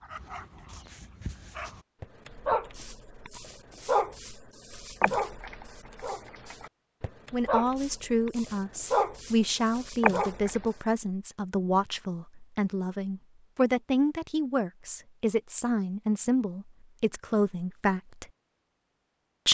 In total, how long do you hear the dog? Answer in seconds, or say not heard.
11 s.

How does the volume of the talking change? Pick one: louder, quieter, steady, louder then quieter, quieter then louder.
steady.